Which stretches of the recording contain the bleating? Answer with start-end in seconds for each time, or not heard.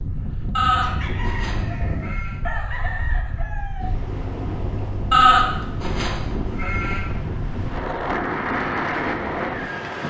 0.6-2.4, 5.1-7.0.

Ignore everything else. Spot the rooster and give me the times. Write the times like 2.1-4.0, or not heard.
0.8-4.0.